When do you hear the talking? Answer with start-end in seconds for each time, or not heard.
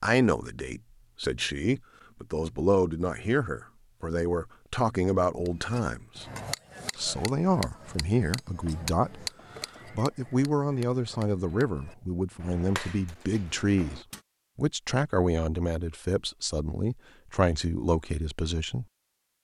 0.0-6.2, 7.0-9.2, 9.9-18.9.